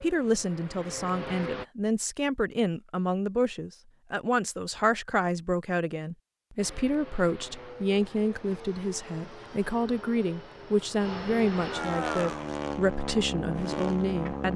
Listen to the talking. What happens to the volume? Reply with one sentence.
The volume of the talking stays about the same.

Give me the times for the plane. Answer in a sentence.
You can hear the plane from 0.0 to 1.6 s and from 6.5 to 14.5 s.